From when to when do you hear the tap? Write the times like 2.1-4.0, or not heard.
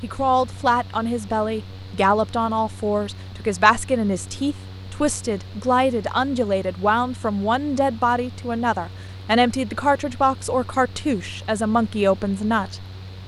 not heard.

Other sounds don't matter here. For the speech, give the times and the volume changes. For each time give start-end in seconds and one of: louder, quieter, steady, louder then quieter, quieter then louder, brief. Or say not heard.
0.0-12.8 steady.